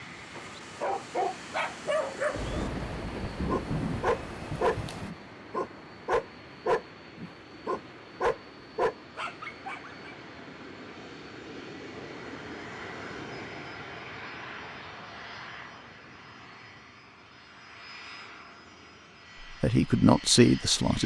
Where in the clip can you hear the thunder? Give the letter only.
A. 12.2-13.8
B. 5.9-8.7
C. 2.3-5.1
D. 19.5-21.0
C.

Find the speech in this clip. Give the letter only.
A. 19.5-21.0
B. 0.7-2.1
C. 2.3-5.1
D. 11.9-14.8
A.